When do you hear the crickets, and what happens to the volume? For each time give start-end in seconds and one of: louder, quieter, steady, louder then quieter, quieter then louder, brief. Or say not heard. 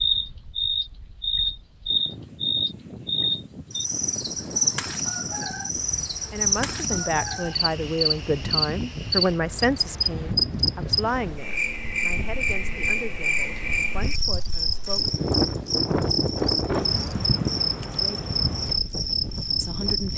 0.0-20.1 steady.